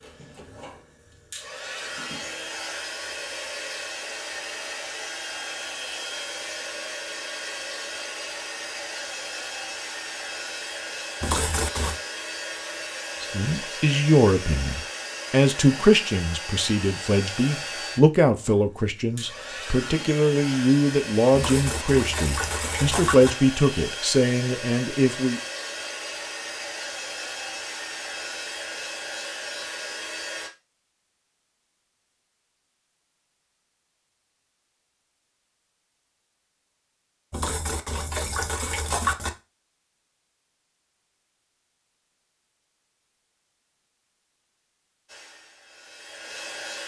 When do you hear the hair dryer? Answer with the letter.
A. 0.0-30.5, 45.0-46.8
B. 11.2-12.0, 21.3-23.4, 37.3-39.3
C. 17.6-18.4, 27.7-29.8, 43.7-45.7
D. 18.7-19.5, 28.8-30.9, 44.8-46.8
A.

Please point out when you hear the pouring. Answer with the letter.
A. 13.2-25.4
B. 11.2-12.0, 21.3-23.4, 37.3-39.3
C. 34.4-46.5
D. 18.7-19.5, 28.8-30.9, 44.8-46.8
B.